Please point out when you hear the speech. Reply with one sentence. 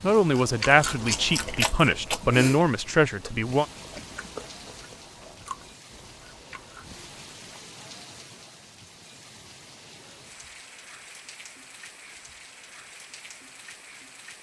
You can hear the speech from 0.0 to 3.6 s.